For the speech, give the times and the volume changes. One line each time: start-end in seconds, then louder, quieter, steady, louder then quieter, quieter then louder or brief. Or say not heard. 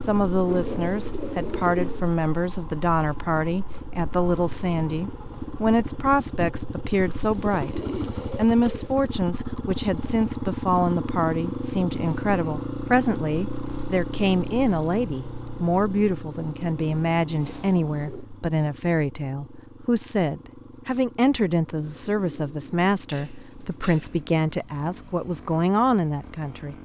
0.0-26.8 steady.